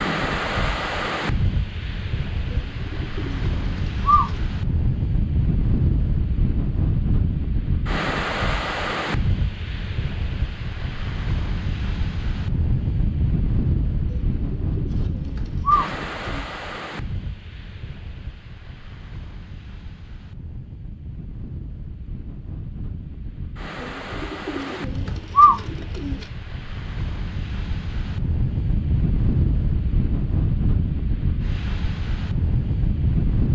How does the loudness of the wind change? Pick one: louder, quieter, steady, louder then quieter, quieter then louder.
quieter then louder.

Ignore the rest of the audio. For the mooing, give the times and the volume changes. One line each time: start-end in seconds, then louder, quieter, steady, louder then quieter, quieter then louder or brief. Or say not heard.
not heard.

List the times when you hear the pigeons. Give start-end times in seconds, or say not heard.
2.5-4.3, 14.1-16.4, 23.8-26.2.